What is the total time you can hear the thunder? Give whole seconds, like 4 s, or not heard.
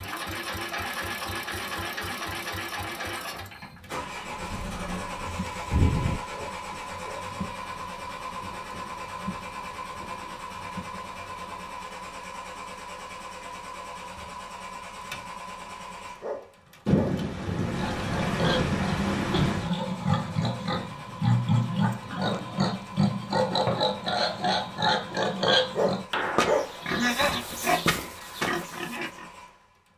4 s.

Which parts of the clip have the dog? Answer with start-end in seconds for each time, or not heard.
6.3-7.3, 16.2-17.2, 25.8-26.8.